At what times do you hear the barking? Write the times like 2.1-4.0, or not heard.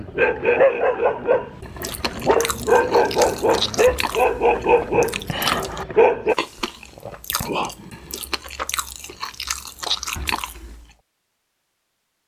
0.0-6.3.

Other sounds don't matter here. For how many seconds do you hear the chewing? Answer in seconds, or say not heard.
9 s.